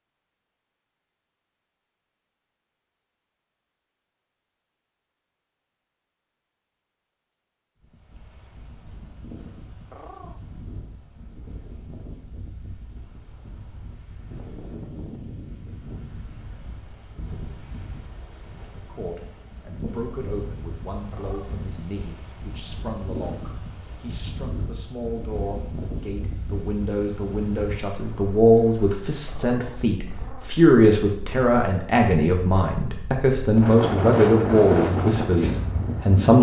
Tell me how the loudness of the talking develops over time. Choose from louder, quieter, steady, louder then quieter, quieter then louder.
louder.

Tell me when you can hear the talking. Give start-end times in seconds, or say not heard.
18.6-36.3.